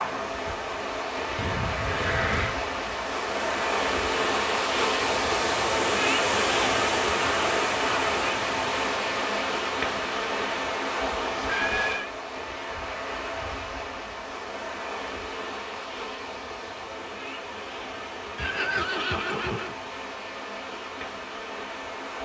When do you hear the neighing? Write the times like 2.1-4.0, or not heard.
1.4-2.6, 11.4-12.2, 18.4-19.8.